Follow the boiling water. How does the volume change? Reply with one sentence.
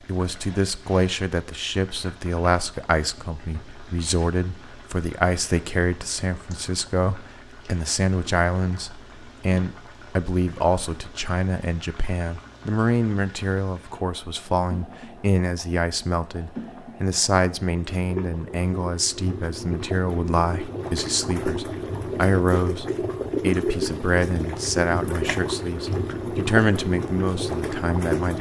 The volume of the boiling water goes up.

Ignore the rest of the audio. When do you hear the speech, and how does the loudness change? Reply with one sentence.
The speech can be heard from 0.1 to 28.3 s, at a steady volume.